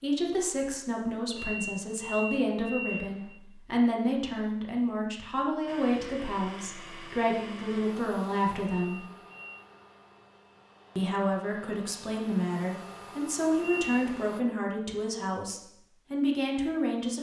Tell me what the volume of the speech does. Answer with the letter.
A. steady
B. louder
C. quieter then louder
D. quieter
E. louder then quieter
A.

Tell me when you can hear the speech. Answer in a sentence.
The speech can be heard from 0.0 to 9.1 s and from 10.9 to 17.1 s.